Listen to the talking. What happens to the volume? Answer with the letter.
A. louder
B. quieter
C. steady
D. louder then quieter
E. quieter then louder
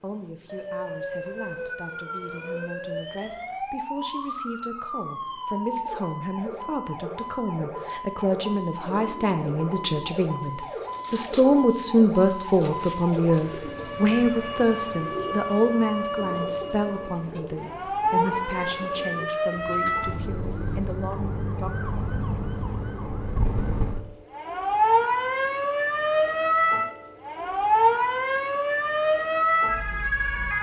D.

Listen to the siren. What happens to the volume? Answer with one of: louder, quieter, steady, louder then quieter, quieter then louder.
louder.